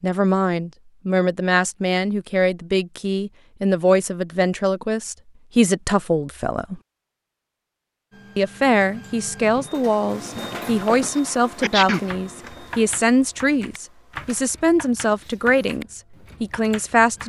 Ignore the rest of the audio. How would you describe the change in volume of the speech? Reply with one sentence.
The volume of the speech stays about the same.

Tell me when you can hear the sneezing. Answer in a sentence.
You can hear the sneezing from 11.2 to 12.1 s.